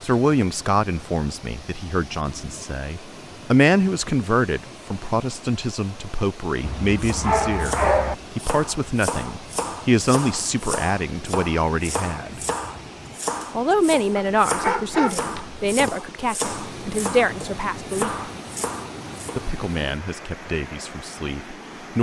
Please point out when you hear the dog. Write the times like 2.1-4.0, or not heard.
6.6-8.2, 14.2-15.9.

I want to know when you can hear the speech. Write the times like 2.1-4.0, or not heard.
0.0-12.4, 13.6-18.1, 19.4-21.9.